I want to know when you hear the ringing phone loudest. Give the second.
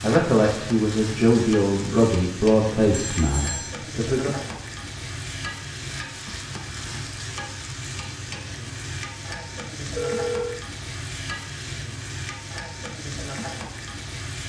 10 s.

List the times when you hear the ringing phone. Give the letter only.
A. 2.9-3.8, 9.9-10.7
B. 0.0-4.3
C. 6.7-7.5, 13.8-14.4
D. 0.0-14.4
A.